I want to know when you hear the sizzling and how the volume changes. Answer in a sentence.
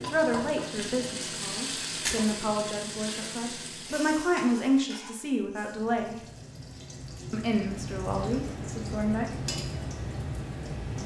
The sizzling can be heard from 0.0 to 11.0 s, getting quieter then louder.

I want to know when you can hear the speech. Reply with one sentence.
The speech can be heard from 0.1 to 6.2 s and from 7.3 to 9.8 s.